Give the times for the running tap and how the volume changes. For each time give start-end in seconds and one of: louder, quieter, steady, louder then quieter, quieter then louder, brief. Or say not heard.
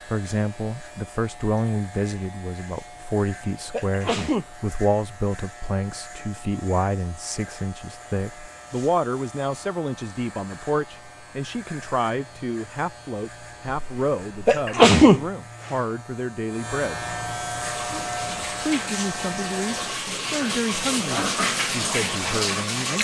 17.6-22.9 louder.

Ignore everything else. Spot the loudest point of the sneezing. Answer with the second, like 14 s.
15 s.